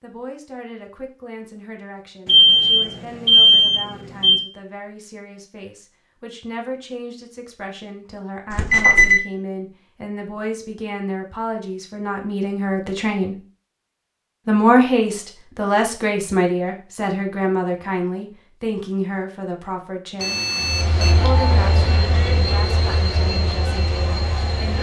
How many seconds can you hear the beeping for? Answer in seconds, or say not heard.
4 s.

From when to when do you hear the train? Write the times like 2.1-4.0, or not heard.
20.6-24.7.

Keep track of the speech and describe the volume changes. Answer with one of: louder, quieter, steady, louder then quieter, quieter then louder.
louder then quieter.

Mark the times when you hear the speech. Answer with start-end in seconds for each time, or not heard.
0.0-13.3, 14.4-20.4, 21.1-24.7.